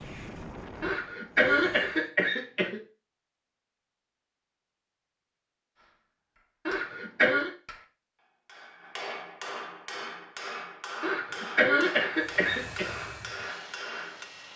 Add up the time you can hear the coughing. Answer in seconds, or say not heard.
5 s.